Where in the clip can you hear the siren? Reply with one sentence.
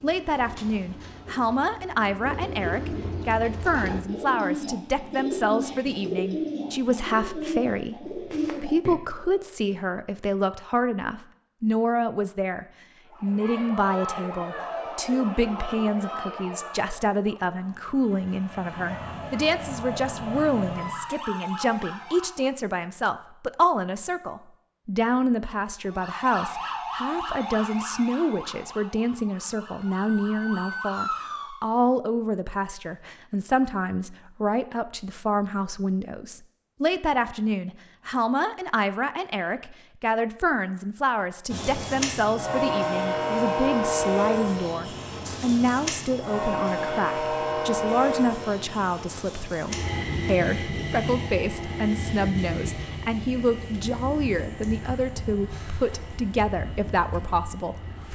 The siren can be heard from 13.1 to 22.5 s and from 25.8 to 31.6 s.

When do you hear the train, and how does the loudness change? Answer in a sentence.
The train can be heard from 41.5 to 58.1 s, getting quieter.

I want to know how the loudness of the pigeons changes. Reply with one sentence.
The loudness of the pigeons goes up.